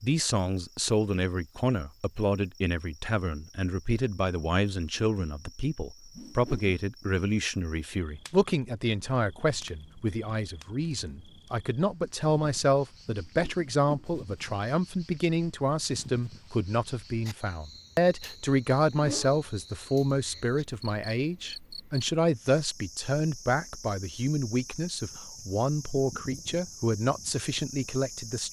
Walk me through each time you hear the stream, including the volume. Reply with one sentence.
The stream can't be heard in this clip.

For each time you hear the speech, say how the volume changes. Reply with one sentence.
You can hear the speech from 0.0 to 28.4 s, at a steady volume.